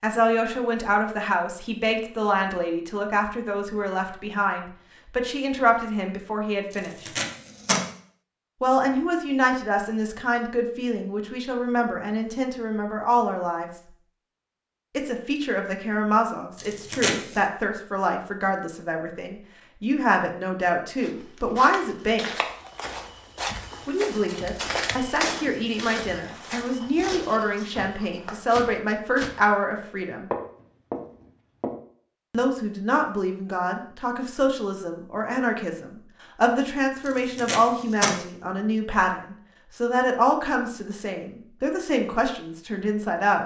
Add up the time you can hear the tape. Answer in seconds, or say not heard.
3 s.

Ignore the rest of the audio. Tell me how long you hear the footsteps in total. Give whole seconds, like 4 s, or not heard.
11 s.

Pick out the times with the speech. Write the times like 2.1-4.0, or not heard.
0.0-7.1, 8.6-13.7, 14.9-22.4, 23.9-30.3, 32.3-43.4.